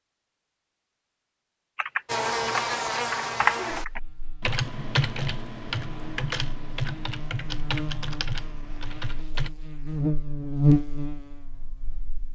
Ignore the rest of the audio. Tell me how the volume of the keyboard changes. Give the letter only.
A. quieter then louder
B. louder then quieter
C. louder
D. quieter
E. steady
D.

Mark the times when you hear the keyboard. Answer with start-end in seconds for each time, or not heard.
1.8-9.5.